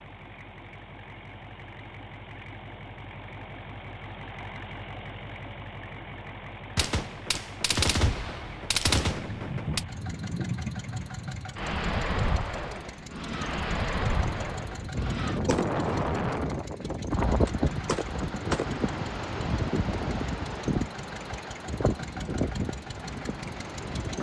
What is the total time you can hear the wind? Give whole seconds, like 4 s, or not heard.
15 s.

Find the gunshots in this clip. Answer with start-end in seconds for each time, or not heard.
6.8-9.8, 14.2-18.9.